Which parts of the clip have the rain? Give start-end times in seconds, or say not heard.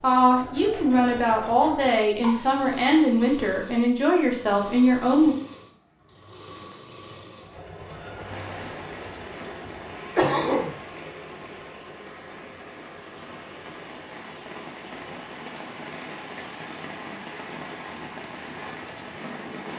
8.1-19.7.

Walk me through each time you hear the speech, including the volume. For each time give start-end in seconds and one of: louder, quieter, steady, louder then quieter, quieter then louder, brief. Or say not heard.
0.0-5.3 steady.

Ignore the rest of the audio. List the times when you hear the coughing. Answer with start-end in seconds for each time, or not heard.
2.2-2.8, 10.2-10.8.